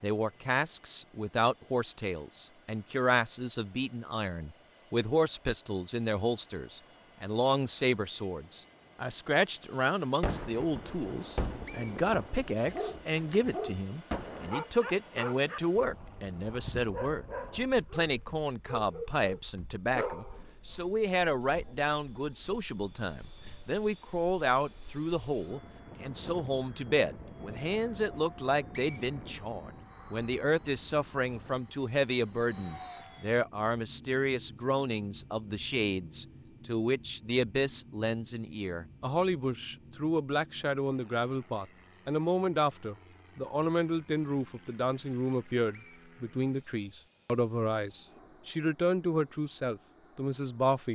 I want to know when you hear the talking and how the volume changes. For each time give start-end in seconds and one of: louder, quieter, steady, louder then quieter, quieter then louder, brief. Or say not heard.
0.0-50.8 steady.